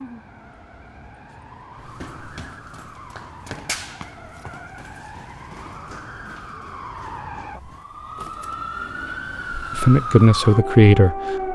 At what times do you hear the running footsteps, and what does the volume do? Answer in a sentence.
You can hear the running footsteps from 1.7 to 8.6 s, getting louder then quieter.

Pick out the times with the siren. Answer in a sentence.
The siren can be heard from 0.0 to 11.4 s.